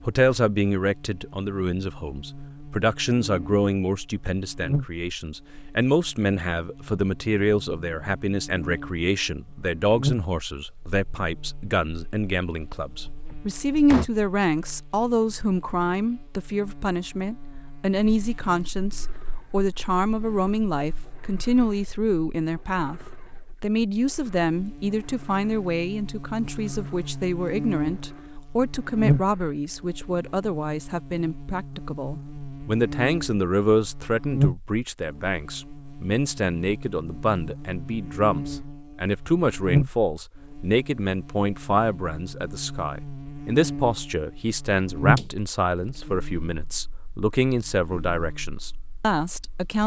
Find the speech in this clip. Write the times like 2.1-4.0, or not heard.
0.0-23.0, 23.6-49.8.